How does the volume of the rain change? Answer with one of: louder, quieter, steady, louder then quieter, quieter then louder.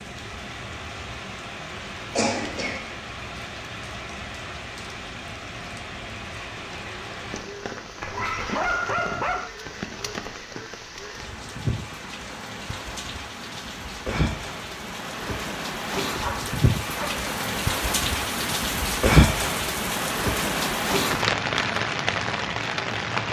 louder.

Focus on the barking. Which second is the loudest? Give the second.
9 s.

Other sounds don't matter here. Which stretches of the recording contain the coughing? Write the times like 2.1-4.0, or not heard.
2.1-2.9.